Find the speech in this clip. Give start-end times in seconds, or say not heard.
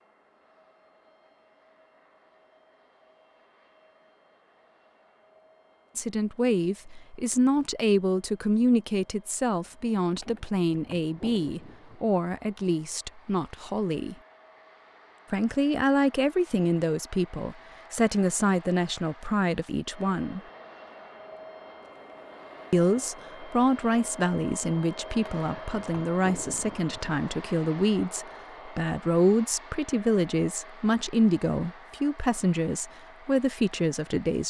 6.0-14.2, 15.3-20.4, 22.7-34.4.